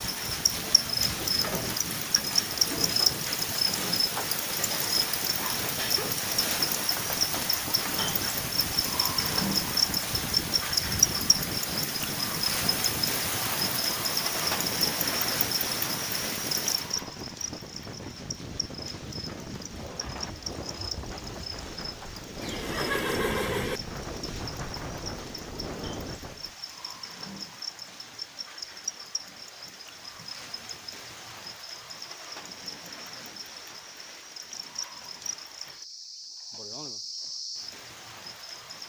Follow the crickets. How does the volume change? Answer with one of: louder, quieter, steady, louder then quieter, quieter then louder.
quieter.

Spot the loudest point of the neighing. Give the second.
23 s.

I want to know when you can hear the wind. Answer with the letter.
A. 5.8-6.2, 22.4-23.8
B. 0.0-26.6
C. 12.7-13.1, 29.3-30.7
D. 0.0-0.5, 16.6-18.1
B.